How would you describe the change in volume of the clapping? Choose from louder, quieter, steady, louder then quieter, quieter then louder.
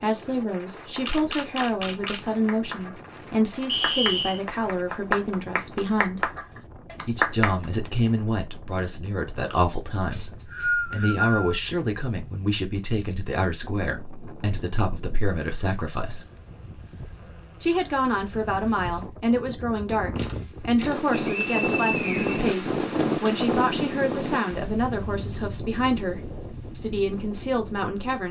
louder.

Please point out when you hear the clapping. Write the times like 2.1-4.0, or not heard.
0.8-7.7.